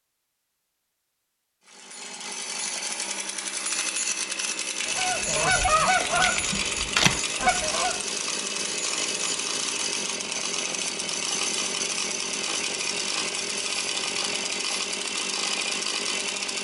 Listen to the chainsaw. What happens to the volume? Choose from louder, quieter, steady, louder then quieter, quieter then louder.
steady.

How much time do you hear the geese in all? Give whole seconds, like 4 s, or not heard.
3 s.